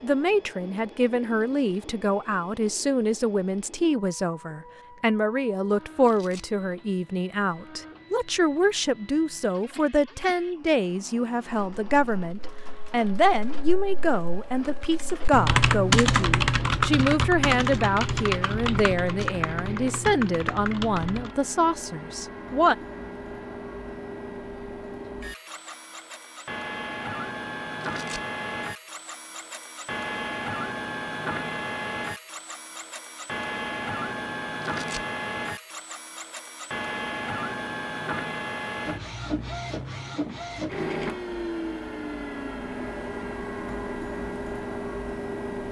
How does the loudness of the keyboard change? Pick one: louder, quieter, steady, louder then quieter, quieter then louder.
louder then quieter.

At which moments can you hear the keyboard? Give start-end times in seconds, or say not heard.
11.6-21.4.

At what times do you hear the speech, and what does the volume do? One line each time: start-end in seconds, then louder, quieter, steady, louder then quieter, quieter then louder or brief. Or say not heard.
0.0-22.8 steady.